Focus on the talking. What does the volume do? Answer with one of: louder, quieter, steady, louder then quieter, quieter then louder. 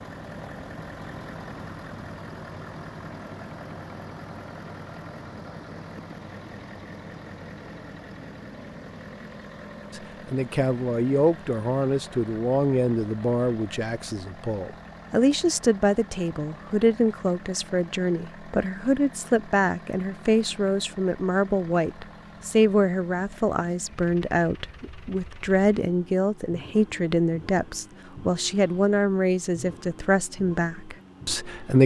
steady.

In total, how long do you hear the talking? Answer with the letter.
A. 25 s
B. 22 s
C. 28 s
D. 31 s
B.